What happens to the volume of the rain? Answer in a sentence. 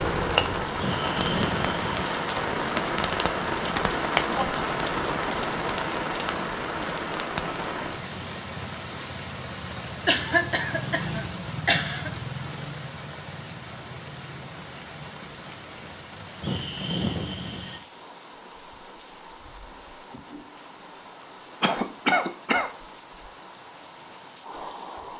The volume of the rain goes down.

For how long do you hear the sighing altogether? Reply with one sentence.
The sighing can be heard for 3 seconds in total.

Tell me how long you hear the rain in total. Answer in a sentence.
The rain can be heard for 25 seconds in total.